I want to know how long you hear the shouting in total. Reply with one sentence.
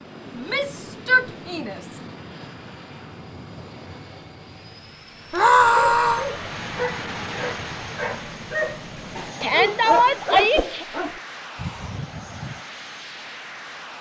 You can hear the shouting for 4 seconds altogether.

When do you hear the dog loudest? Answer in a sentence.
The loudest moment of the dog is at 10 seconds.